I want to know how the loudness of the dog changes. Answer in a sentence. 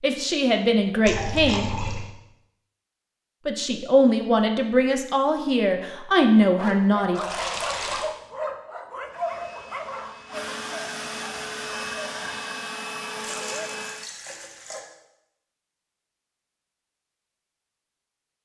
The volume of the dog goes down.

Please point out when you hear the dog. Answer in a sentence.
You can hear the dog from 6.5 to 12.4 s.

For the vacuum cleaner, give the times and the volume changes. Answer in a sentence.
You can hear the vacuum cleaner from 9.1 to 14.1 s, getting louder.